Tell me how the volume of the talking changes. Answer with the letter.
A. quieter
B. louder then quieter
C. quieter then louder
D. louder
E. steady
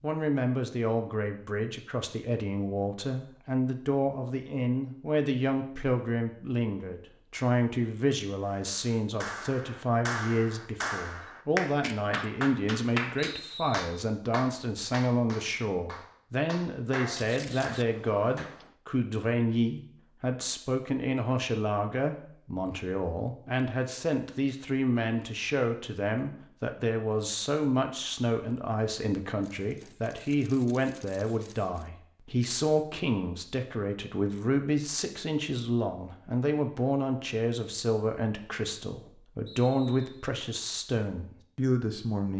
E.